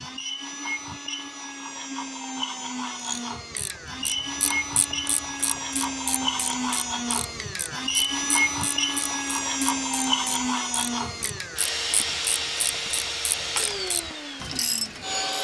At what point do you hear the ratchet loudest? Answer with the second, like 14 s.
15 s.